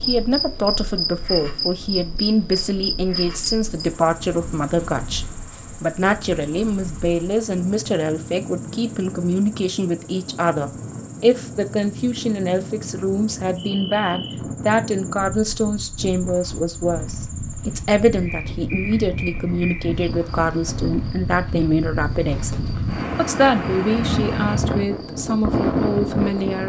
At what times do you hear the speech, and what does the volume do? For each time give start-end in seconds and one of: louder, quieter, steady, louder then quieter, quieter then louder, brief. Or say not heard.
0.0-26.6 steady.